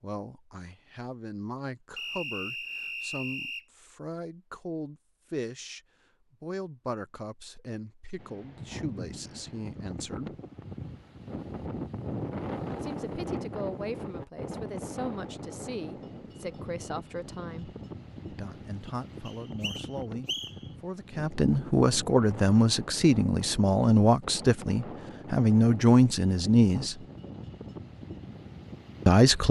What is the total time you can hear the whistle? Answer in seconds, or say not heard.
3 s.